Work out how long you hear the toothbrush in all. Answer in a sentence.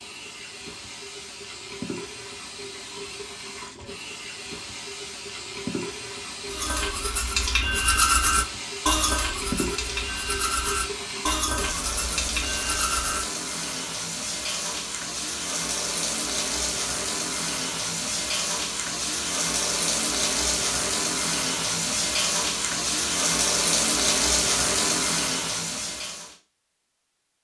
The toothbrush can be heard for 7 seconds in total.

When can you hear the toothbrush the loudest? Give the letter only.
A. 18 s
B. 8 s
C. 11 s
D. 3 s
B.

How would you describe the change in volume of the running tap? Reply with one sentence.
The volume of the running tap goes up.